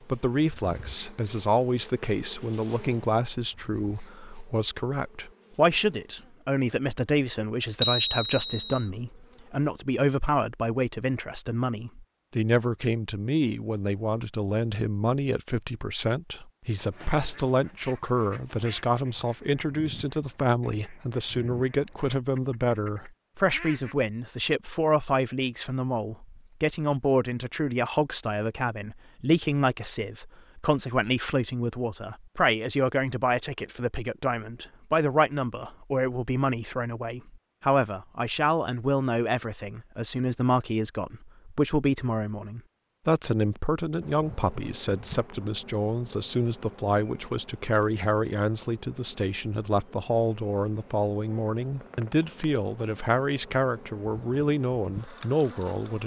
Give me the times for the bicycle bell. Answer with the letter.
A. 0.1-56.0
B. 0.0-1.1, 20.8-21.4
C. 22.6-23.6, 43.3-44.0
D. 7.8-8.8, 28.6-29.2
D.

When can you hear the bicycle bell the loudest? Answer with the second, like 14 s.
8 s.